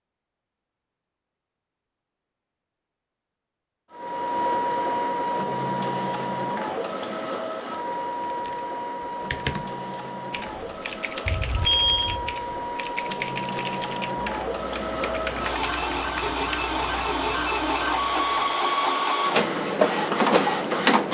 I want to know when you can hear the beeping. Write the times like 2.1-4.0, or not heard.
11.2-12.3.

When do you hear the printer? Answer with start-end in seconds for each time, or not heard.
3.9-21.0.